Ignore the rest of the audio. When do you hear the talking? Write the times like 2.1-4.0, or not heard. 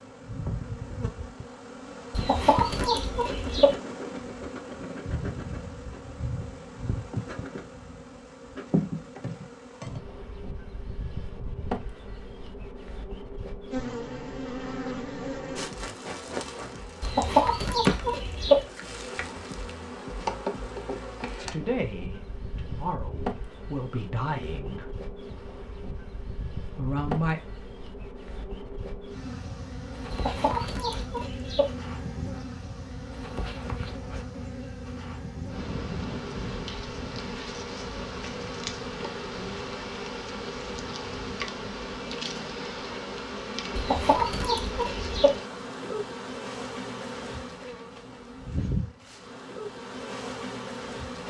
21.4-24.9, 26.8-27.4.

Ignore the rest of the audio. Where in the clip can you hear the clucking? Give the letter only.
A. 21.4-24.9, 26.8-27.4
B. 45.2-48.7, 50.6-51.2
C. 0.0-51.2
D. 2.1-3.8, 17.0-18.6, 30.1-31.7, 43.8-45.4
D.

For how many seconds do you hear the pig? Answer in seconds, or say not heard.
not heard.